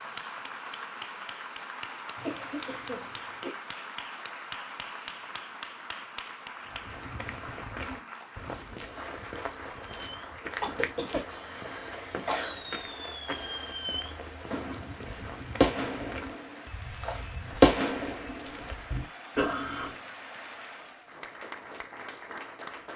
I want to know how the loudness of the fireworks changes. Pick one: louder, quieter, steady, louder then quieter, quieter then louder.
louder.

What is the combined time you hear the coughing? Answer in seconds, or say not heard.
4 s.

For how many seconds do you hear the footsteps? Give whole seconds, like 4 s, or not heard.
12 s.